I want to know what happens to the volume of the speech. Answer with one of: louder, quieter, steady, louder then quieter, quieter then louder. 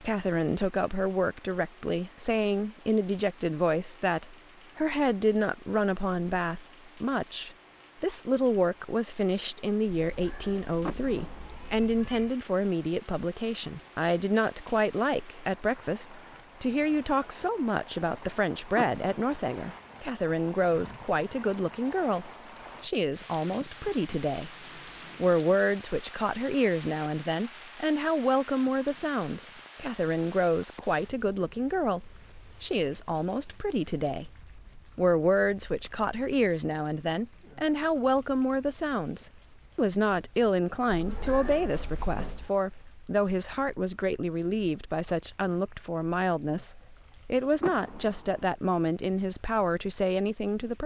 steady.